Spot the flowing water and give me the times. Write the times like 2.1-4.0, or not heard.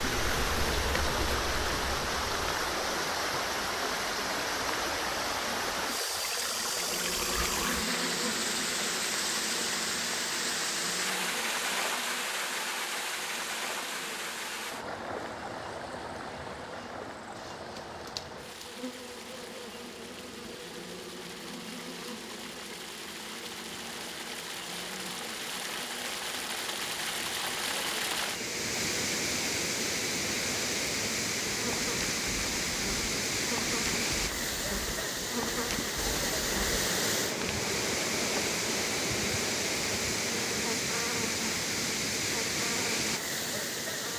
0.0-44.1.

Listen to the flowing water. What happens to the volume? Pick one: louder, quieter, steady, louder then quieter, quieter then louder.
quieter then louder.